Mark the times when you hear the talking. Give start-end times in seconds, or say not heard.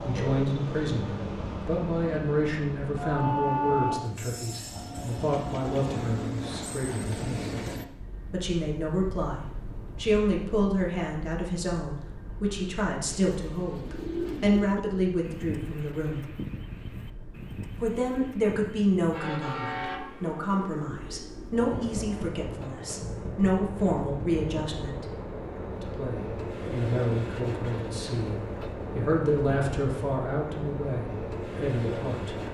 0.0-7.5, 8.3-16.2, 17.8-25.1, 25.8-32.4.